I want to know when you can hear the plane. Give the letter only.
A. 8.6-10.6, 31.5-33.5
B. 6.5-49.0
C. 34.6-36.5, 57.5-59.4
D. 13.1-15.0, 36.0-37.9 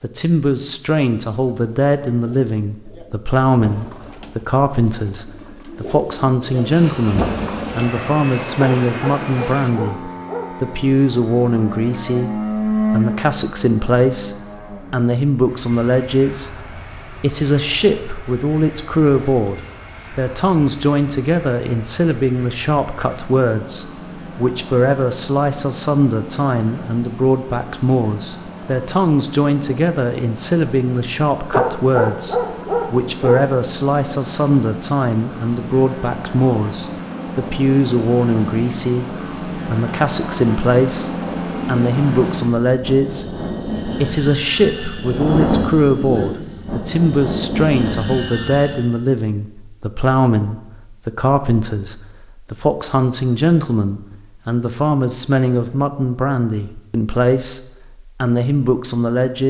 B.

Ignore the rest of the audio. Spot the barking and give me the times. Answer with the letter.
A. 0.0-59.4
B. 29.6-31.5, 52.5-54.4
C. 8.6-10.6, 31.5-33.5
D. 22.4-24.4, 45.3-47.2
C.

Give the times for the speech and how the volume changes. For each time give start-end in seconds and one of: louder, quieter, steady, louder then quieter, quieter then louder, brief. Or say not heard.
0.0-59.4 steady.